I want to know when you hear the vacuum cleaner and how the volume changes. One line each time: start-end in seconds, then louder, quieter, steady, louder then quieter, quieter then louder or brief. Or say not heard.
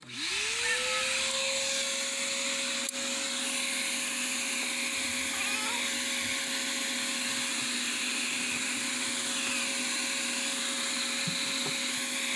0.0-12.3 steady.